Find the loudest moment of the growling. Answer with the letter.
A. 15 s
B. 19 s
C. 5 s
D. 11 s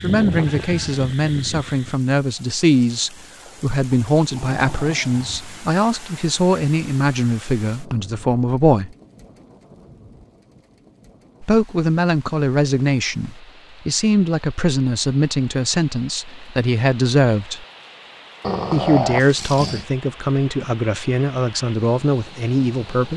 B.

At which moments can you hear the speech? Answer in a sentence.
You can hear the speech from 0.0 to 8.9 s, from 11.4 to 17.6 s and from 18.7 to 23.1 s.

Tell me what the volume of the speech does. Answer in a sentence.
The volume of the speech stays about the same.